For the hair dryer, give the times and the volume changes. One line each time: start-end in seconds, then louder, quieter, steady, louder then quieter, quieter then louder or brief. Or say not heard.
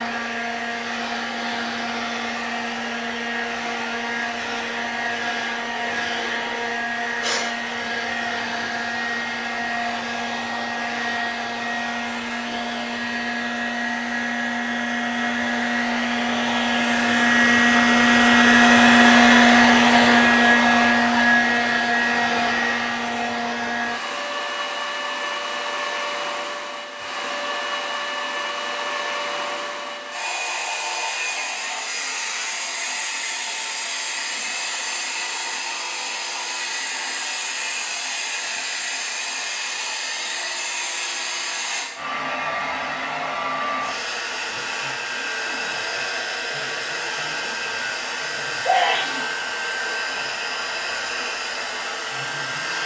0.0-52.8 louder then quieter.